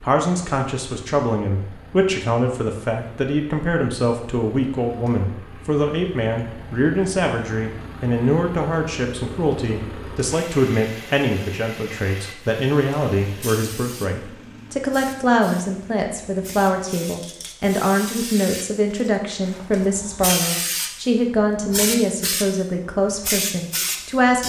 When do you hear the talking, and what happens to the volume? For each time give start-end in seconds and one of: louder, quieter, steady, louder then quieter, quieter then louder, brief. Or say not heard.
0.0-24.4 steady.